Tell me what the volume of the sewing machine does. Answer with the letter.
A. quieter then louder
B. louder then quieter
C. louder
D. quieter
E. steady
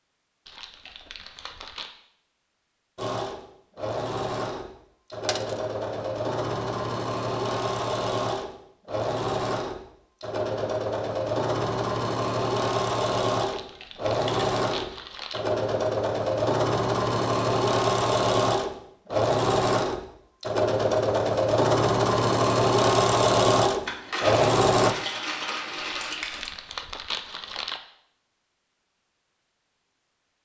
C.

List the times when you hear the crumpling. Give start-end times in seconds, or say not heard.
0.5-1.9, 13.4-15.4, 25.9-27.8.